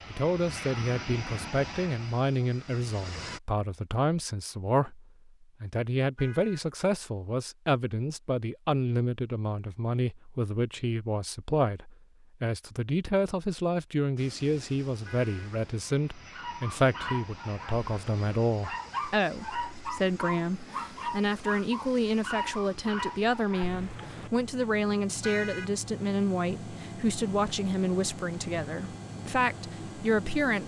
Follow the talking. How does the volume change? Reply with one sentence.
The volume of the talking stays about the same.